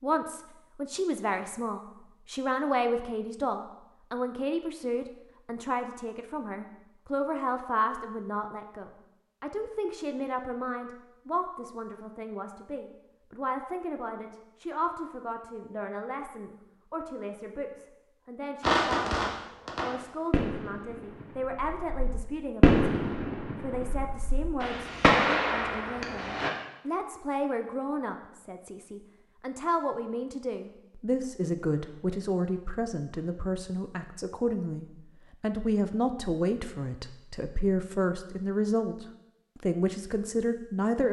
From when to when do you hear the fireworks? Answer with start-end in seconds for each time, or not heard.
18.6-26.5.